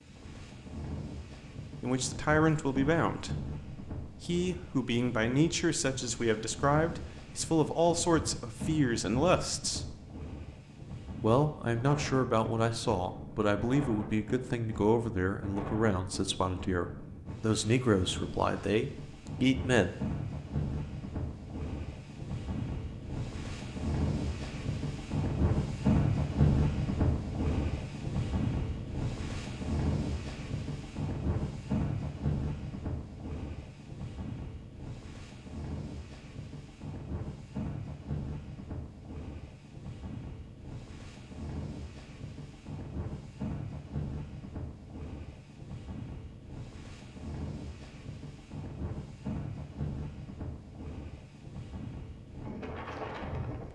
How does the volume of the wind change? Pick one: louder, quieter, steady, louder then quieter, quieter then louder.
louder then quieter.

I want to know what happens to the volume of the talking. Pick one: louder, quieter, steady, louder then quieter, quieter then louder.
steady.